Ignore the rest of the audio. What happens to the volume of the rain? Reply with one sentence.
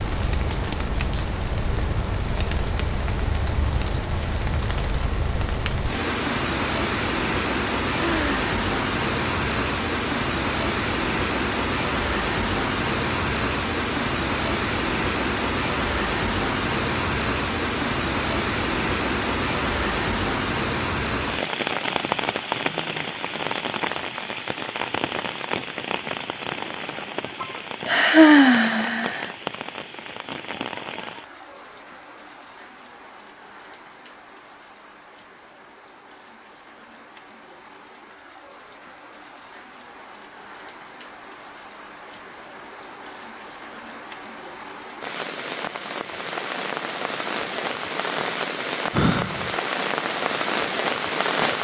The loudness of the rain goes down, then up.